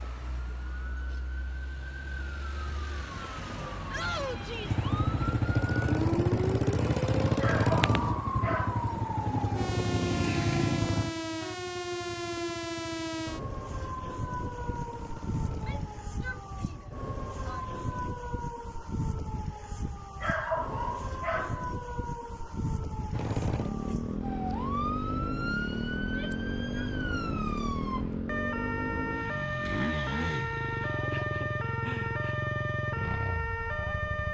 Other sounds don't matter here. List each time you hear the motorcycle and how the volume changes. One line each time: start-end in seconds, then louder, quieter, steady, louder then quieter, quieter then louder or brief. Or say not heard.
4.6-18.1 quieter
23.1-34.2 steady.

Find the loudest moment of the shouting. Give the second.
4 s.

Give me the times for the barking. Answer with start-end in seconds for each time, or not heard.
7.4-8.9, 20.2-21.7.